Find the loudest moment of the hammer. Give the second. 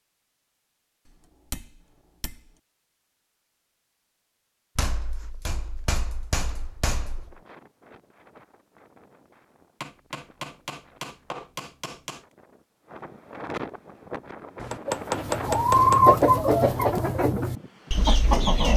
15 s.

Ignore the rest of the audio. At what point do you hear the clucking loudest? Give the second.
16 s.